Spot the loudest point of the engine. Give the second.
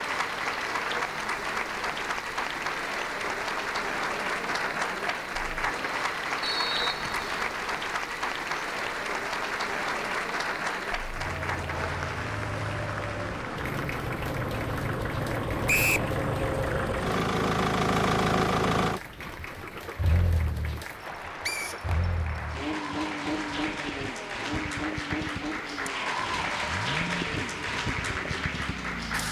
18 s.